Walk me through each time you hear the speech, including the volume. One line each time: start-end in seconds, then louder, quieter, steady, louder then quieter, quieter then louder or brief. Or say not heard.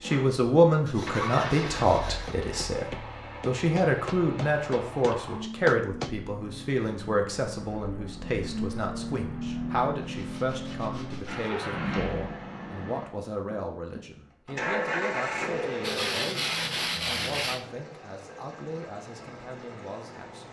0.0-20.4 quieter.